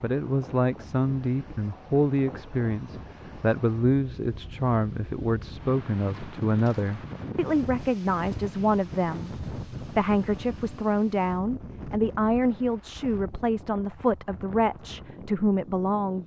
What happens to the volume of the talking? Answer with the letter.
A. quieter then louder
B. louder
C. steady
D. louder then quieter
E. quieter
C.